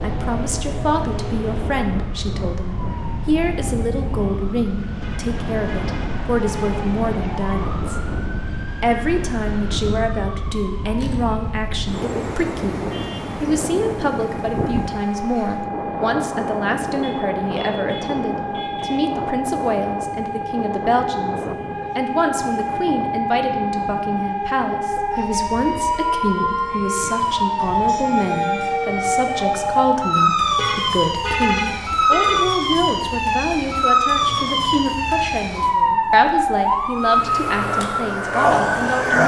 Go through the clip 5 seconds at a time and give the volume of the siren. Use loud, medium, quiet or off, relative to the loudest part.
quiet, quiet, quiet, medium, medium, loud, loud, loud.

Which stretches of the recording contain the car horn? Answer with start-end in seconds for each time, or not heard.
5.0-6.8, 17.0-19.0, 30.5-32.5.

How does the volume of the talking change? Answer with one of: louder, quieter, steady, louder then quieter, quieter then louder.
steady.